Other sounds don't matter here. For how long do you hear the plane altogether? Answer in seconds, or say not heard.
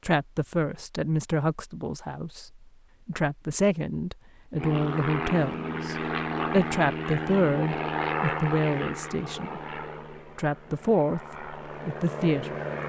8 s.